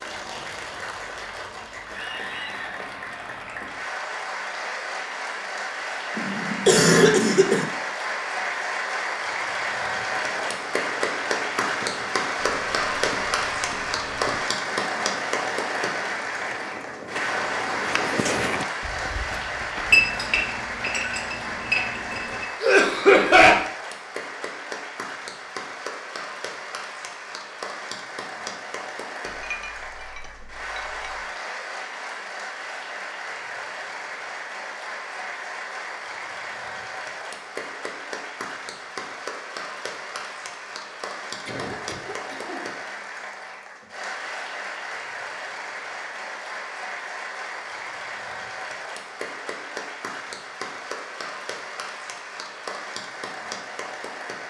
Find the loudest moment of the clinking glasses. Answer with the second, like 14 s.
20 s.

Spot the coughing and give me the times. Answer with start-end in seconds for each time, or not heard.
6.2-7.7, 22.6-23.6, 41.5-42.6.